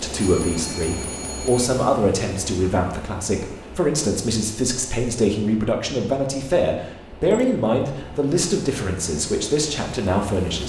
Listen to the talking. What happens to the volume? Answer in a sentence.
The volume of the talking stays about the same.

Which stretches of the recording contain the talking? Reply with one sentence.
The talking can be heard from 0.0 to 10.6 s.